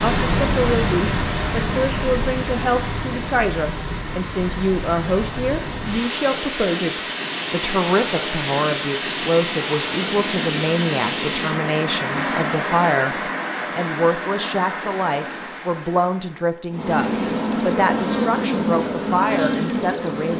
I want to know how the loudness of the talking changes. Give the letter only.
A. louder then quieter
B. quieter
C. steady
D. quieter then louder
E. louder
C.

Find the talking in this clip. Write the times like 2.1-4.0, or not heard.
0.0-13.2, 13.8-20.3.